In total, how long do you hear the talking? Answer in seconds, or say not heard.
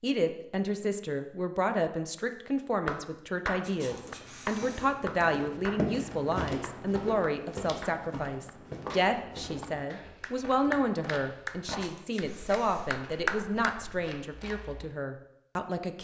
16 s.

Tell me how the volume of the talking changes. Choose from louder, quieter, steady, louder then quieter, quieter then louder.
steady.